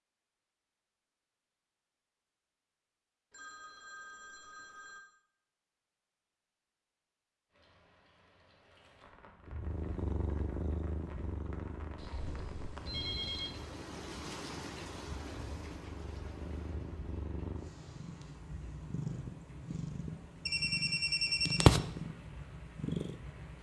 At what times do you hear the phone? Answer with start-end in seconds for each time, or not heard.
3.3-5.0, 11.9-13.6, 20.4-21.8.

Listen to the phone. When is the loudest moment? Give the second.
21 s.